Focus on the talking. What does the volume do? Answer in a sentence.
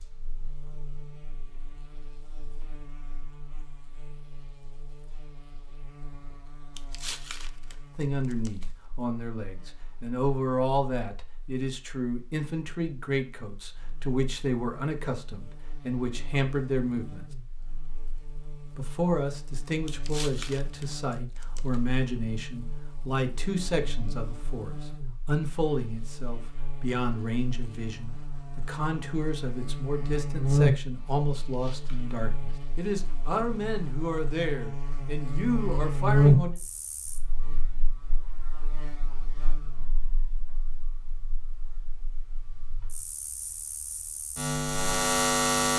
The volume of the talking stays about the same.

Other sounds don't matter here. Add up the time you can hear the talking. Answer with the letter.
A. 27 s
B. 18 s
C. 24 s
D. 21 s
A.